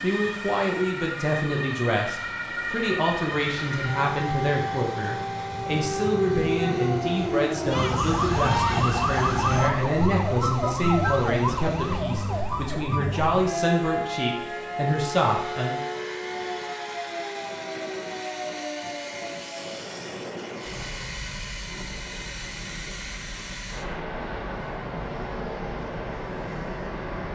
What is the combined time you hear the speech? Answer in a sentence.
You can hear the speech for 16 seconds altogether.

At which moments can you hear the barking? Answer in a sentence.
The barking can't be heard in this clip.